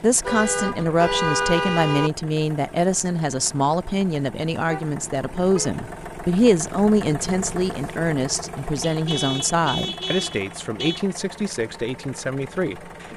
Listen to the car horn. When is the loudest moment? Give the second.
1 s.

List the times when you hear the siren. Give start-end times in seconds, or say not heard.
not heard.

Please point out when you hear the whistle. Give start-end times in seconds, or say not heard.
not heard.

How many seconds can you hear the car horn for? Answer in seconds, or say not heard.
5 s.